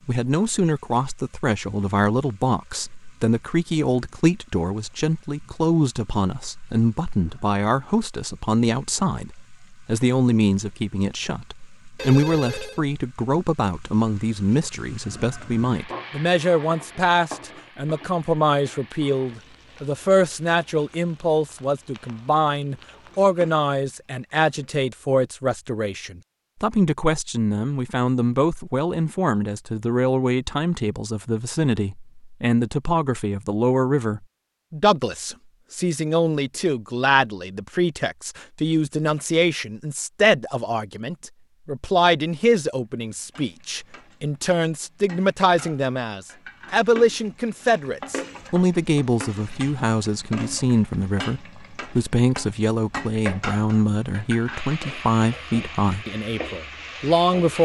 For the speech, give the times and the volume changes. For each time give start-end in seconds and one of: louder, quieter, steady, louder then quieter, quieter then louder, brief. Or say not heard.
0.1-57.6 steady.